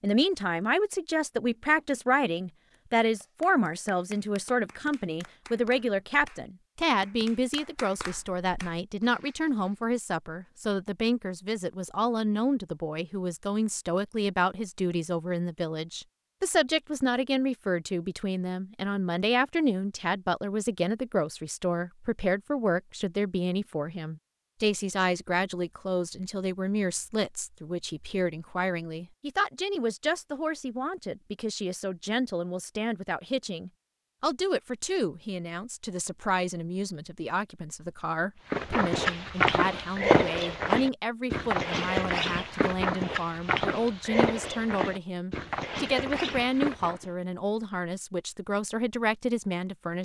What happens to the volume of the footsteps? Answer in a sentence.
The loudness of the footsteps goes down.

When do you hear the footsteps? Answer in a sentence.
You can hear the footsteps from 38.5 to 47.1 s.